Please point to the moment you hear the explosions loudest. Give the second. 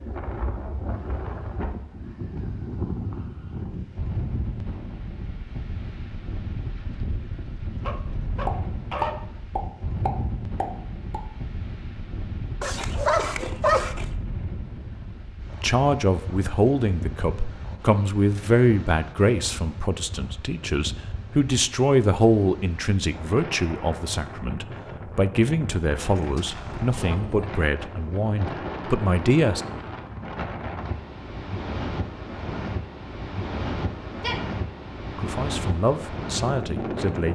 9 s.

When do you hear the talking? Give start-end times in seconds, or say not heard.
15.5-29.6, 35.1-37.3.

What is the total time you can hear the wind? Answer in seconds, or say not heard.
37 s.